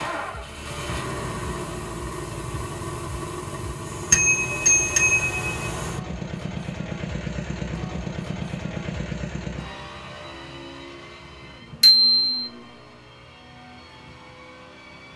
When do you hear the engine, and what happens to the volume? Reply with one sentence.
The engine can be heard from 0.0 to 15.1 s, getting quieter.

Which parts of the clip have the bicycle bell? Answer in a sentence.
The bicycle bell can be heard from 4.1 to 5.5 s and from 11.8 to 12.4 s.